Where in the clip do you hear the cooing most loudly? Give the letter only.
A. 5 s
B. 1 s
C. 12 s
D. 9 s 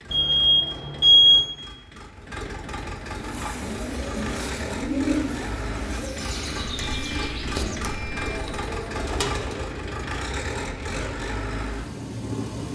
A.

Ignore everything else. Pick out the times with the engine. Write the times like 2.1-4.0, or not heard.
0.0-12.6.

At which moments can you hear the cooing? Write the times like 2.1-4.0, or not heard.
3.0-9.8.